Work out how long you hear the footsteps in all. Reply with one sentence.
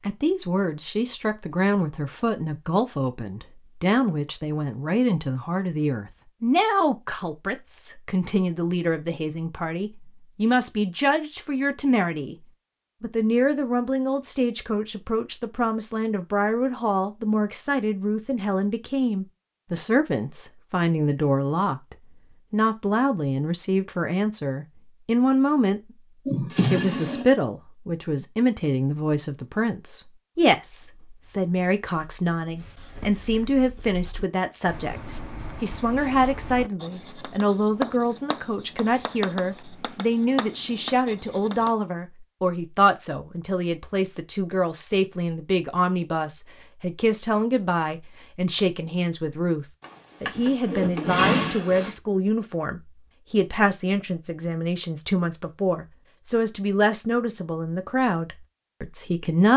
You can't hear the footsteps here.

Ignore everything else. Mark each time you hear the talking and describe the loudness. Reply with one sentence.
You can hear the talking from 0.0 to 25.8 s, at a steady volume; and from 26.7 to 59.5 s, at a steady volume.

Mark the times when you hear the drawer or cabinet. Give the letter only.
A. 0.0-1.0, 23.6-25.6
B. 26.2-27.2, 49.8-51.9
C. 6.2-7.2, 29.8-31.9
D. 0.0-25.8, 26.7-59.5
B.